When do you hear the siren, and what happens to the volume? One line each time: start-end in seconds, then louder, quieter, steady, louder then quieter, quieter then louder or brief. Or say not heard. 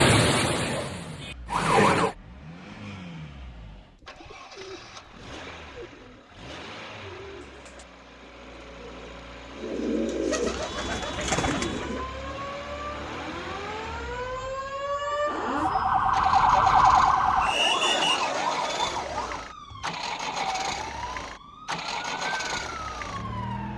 0.0-2.1 brief
10.5-23.7 louder then quieter.